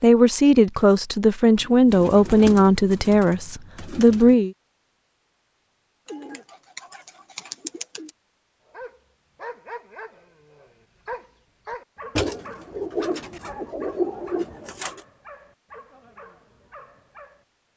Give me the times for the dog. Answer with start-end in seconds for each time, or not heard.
8.7-17.4.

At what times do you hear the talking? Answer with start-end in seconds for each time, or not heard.
0.0-4.5.